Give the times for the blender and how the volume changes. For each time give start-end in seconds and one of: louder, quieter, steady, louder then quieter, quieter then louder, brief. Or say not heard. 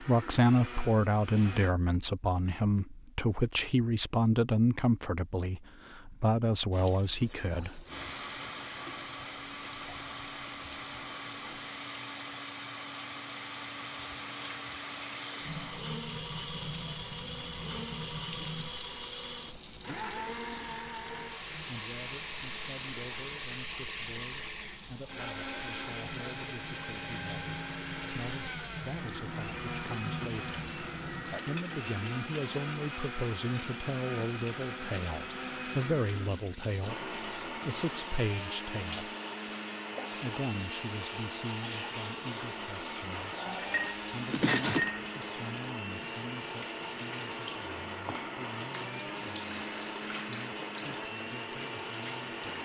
0.0-1.8 brief
7.8-52.6 steady.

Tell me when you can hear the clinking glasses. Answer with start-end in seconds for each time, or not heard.
43.6-45.0.